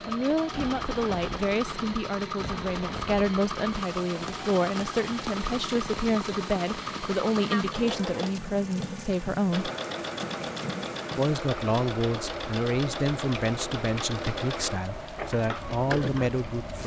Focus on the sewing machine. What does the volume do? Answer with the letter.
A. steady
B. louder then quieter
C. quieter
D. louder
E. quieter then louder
A.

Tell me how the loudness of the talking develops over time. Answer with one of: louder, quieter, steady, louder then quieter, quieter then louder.
steady.